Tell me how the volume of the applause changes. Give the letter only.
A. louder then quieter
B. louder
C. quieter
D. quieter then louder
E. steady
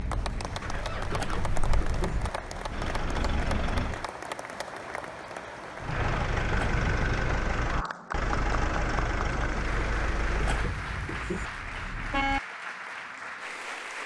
E.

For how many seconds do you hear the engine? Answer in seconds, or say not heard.
9 s.